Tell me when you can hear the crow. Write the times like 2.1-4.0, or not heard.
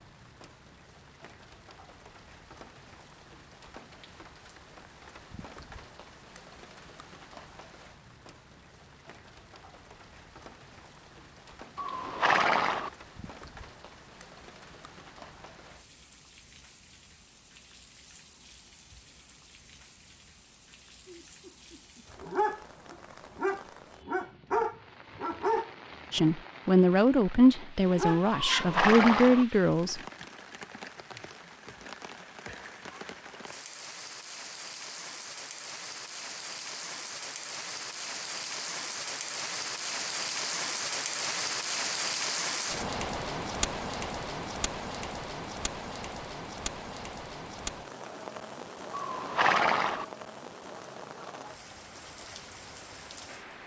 not heard.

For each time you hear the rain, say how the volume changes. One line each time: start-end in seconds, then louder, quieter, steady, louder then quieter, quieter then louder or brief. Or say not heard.
0.0-53.6 louder.